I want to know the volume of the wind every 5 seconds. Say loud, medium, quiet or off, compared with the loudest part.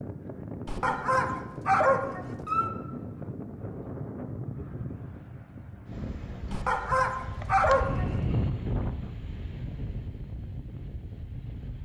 loud, loud, medium.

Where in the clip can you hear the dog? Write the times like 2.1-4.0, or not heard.
0.7-2.7, 6.5-8.1.